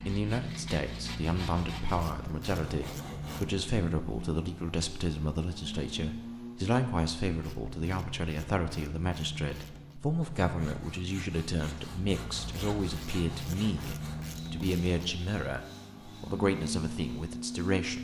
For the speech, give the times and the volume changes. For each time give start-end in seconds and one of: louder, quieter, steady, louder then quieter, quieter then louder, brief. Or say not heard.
0.1-17.9 steady.